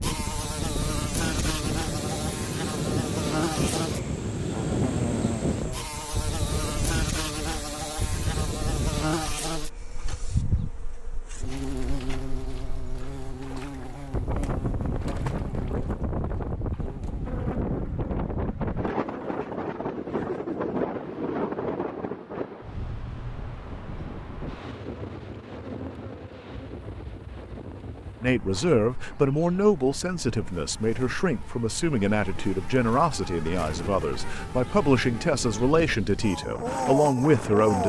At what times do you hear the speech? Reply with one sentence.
You can hear the speech from 28.2 to 37.8 s.